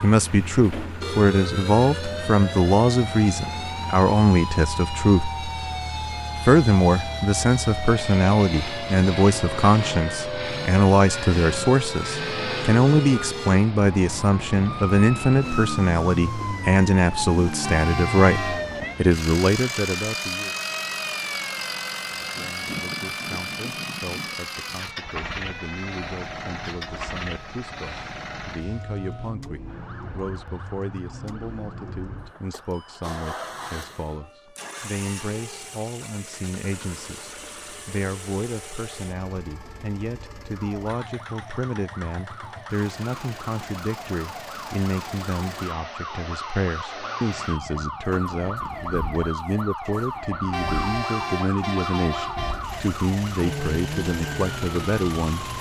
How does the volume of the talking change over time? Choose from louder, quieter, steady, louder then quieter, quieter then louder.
quieter then louder.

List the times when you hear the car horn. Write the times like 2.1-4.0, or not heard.
17.6-18.8, 50.5-52.8.